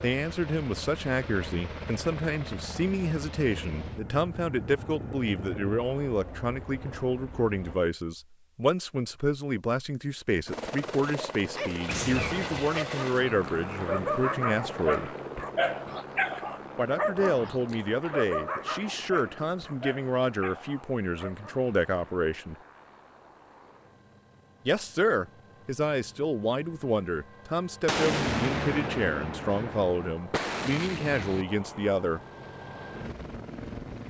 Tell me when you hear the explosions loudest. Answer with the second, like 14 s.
28 s.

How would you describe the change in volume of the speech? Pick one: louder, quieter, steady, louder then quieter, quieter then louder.
steady.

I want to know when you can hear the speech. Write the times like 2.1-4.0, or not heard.
0.0-15.2, 16.8-22.6, 24.6-32.2.